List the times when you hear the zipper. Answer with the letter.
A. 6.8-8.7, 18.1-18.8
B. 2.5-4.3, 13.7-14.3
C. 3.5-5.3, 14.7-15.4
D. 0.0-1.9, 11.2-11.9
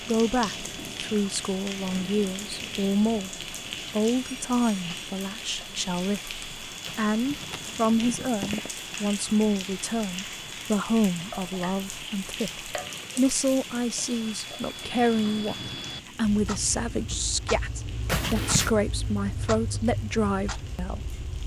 A.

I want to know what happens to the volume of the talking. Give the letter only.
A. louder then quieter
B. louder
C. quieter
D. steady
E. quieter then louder
D.